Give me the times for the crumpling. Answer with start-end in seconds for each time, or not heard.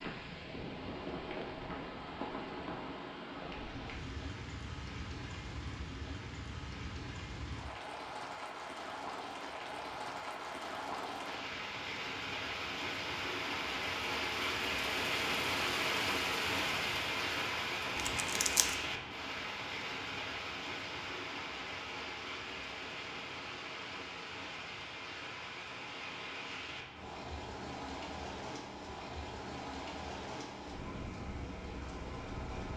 17.9-18.8.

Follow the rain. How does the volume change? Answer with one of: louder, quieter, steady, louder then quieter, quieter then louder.
louder then quieter.